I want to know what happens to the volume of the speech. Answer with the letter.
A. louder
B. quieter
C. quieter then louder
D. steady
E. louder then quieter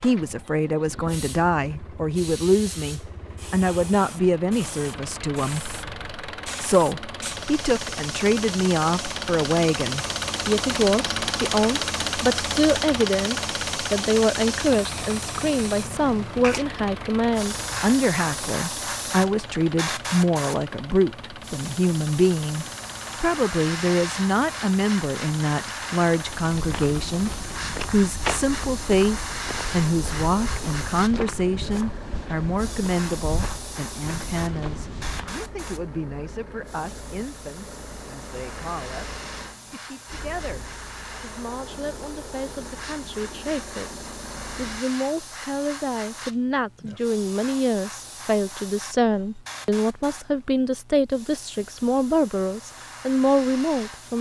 C.